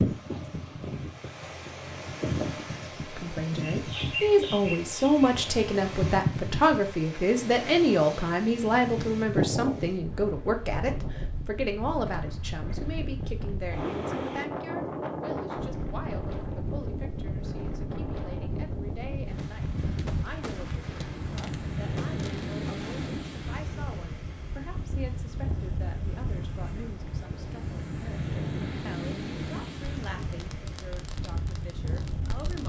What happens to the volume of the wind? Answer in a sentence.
The loudness of the wind stays about the same.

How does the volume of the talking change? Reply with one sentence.
The loudness of the talking goes down.